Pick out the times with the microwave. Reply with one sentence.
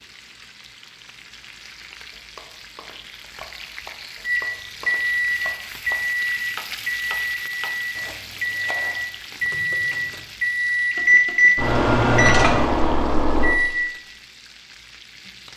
The microwave can be heard from 4.2 to 13.8 s.